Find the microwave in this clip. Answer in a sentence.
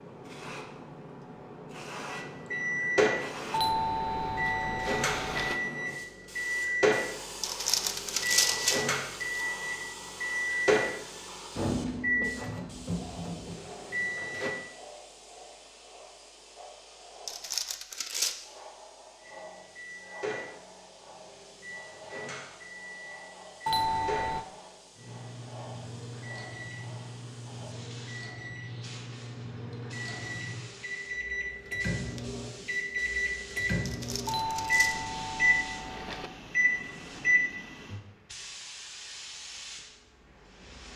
The microwave can be heard from 2.2 to 14.6 s and from 19.2 to 38.0 s.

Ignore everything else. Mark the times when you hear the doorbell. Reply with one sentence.
You can hear the doorbell from 3.5 to 5.5 s, from 23.6 to 24.4 s and from 34.2 to 36.3 s.